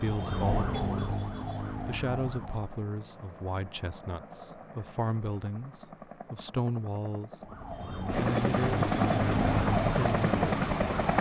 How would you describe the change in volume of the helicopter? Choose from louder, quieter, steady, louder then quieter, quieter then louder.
louder.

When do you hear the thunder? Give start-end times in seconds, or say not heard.
not heard.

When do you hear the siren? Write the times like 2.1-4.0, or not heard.
0.0-2.8, 7.4-11.1.